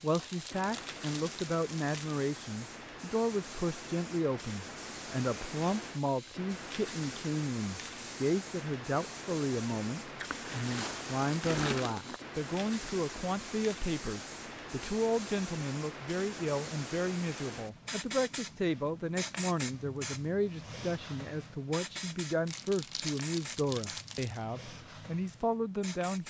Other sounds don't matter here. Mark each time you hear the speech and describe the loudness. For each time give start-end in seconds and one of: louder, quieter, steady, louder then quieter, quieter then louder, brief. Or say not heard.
0.0-26.2 steady.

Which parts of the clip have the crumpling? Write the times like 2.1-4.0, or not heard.
0.1-2.1, 10.2-12.2, 22.4-24.4.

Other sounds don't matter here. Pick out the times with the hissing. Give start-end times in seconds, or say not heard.
0.0-26.2.